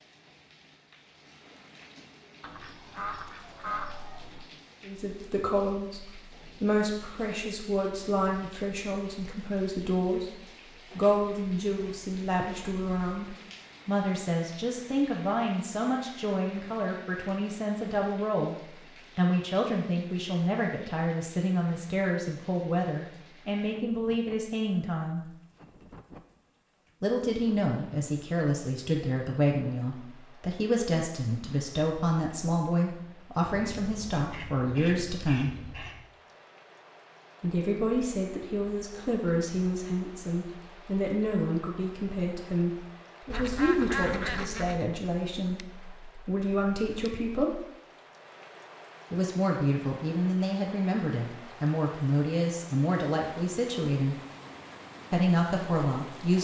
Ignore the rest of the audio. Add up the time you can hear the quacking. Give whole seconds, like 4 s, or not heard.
6 s.